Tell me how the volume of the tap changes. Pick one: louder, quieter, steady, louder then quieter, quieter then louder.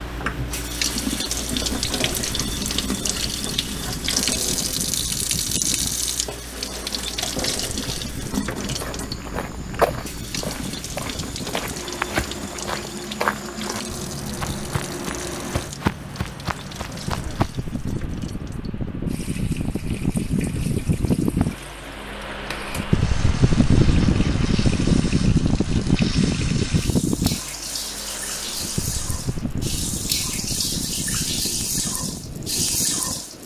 quieter then louder.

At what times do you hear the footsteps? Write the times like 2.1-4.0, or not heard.
8.6-17.5.